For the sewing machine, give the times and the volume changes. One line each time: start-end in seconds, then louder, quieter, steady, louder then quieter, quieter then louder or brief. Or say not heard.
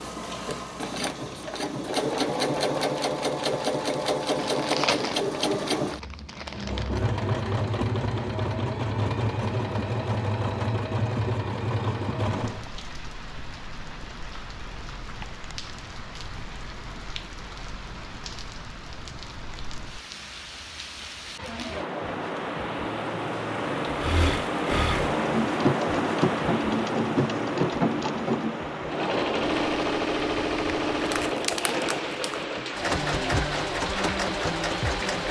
0.0-12.7 steady
23.9-35.2 steady.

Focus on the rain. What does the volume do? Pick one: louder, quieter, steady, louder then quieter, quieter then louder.
louder then quieter.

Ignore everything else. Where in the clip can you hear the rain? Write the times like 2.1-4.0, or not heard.
12.3-35.2.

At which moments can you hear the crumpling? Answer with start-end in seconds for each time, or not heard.
4.3-7.0, 31.0-32.4.